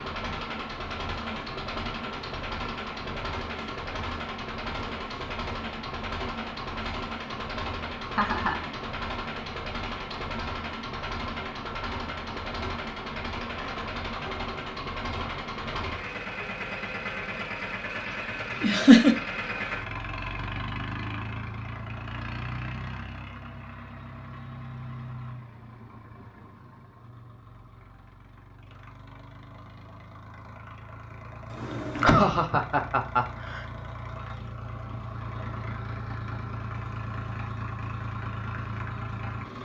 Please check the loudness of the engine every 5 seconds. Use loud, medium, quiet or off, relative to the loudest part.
loud, loud, loud, loud, loud, quiet, medium, loud.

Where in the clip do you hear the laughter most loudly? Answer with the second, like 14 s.
19 s.